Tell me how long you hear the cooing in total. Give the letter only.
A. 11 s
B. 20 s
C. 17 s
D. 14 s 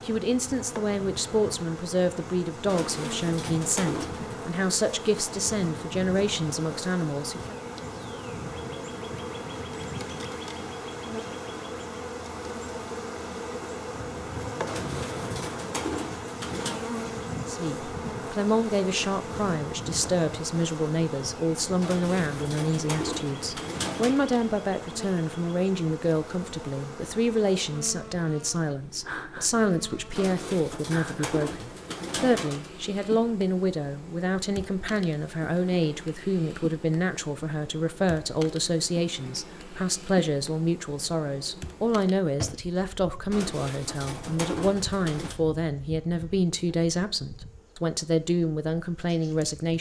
A.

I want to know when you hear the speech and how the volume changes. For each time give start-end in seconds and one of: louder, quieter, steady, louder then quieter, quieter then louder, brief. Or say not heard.
0.1-7.5 steady
17.4-49.7 steady.